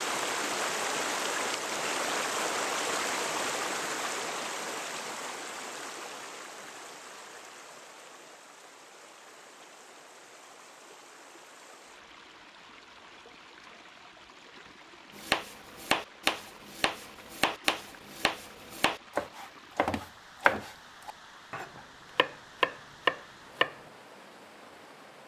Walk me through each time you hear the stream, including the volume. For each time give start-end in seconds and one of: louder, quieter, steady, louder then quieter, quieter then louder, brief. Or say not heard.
0.0-25.2 quieter.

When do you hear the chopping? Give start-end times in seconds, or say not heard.
15.2-23.8.